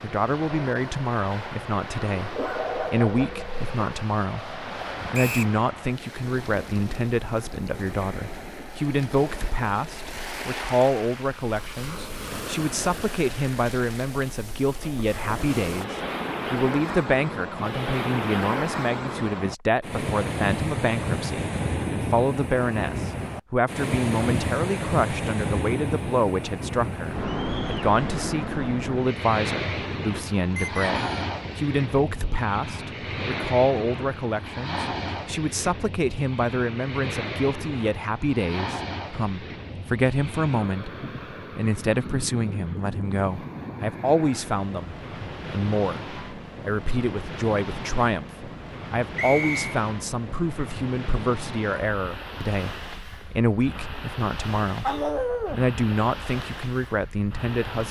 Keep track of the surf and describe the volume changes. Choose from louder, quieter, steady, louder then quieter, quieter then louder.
louder then quieter.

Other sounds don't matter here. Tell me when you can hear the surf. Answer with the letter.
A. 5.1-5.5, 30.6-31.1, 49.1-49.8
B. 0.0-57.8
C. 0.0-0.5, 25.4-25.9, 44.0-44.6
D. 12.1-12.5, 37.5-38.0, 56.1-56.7
B.